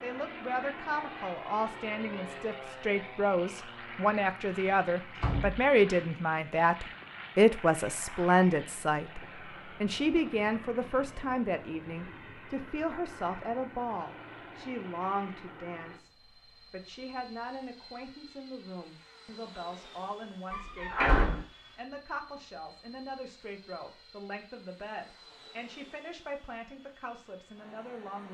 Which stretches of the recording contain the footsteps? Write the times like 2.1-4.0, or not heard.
not heard.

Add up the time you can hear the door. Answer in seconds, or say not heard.
2 s.